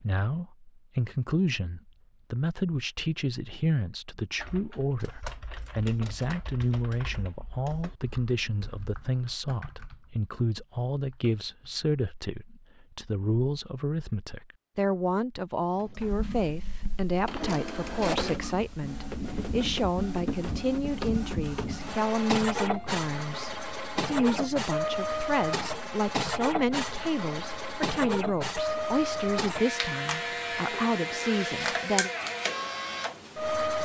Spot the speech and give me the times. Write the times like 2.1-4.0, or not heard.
0.0-32.1.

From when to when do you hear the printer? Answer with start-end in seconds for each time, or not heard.
15.8-33.7.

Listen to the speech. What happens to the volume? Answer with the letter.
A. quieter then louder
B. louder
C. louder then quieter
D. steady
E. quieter
D.